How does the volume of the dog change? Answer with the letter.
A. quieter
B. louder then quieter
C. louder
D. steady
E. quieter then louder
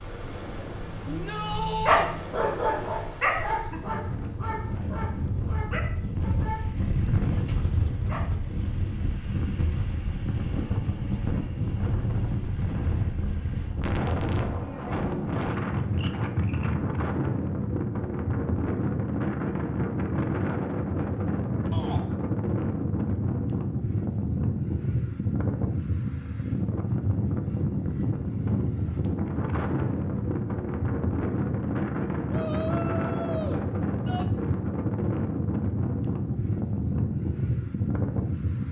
A.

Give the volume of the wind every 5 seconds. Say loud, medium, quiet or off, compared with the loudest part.
medium, loud, loud, loud, loud, loud, loud, loud.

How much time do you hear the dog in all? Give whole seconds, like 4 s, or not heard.
8 s.